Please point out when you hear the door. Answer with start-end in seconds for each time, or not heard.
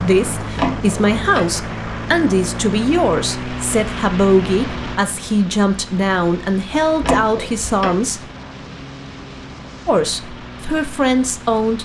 0.5-1.6, 7.0-8.0.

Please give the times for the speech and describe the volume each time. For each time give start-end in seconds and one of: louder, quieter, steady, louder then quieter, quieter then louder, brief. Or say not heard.
0.0-8.2 steady
9.8-11.7 brief.